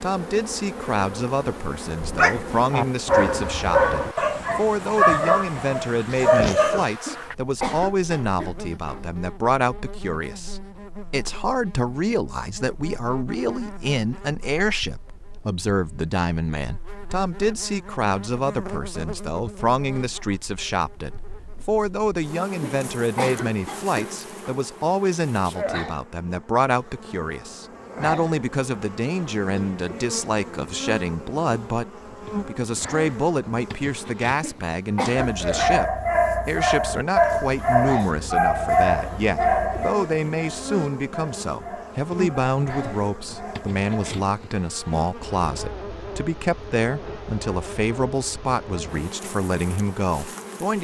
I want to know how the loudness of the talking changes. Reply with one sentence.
The volume of the talking stays about the same.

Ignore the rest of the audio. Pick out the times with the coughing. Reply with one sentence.
The coughing can be heard from 7.0 to 9.1 s, from 22.6 to 24.6 s and from 34.4 to 35.4 s.